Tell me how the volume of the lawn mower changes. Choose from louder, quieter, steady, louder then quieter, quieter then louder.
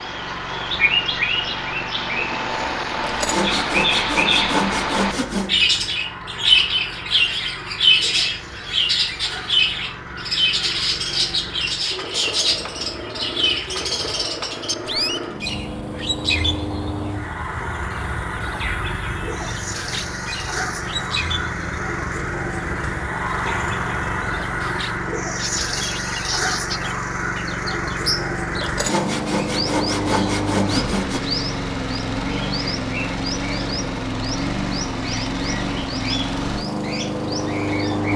louder.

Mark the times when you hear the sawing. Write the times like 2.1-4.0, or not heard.
3.0-5.5, 28.6-31.2.